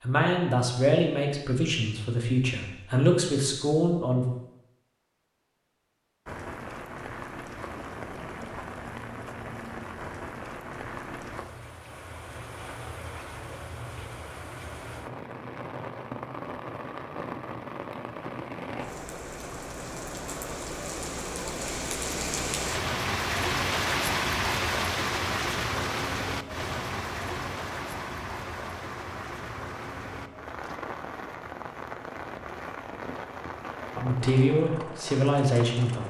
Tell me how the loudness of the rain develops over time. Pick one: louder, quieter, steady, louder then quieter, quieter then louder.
louder then quieter.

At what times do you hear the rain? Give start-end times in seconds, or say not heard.
6.2-36.0.